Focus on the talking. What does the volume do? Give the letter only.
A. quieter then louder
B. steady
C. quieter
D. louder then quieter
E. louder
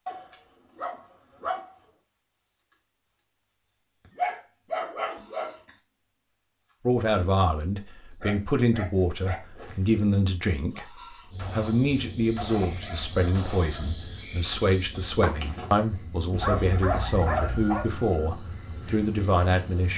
B.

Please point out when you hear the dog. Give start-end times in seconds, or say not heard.
0.1-1.6, 4.2-5.7, 8.2-10.1, 12.3-14.2, 16.3-17.9.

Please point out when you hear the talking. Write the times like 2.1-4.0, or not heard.
6.8-10.8, 11.5-19.9.